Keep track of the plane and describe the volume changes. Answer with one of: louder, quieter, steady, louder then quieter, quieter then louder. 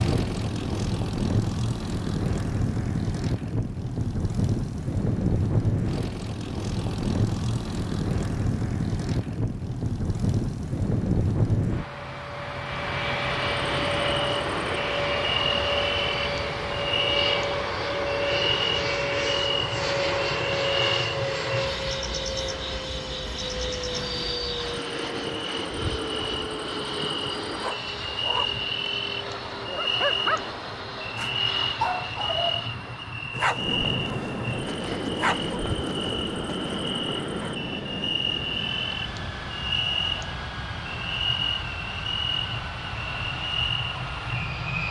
quieter.